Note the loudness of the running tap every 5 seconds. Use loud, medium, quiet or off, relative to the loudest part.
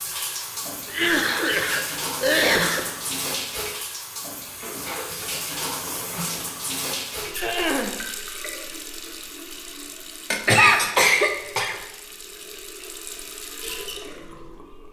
loud, loud, medium.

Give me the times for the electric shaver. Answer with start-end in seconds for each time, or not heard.
not heard.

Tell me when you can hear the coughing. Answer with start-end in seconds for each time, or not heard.
0.8-2.8, 7.4-8.0, 10.3-11.8.